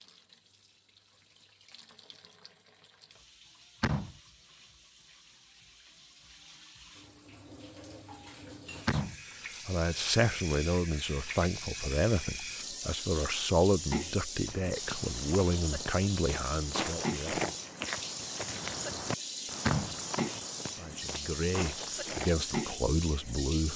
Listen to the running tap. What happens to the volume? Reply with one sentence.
The volume of the running tap goes up.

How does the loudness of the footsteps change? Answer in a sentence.
The volume of the footsteps goes up, then down.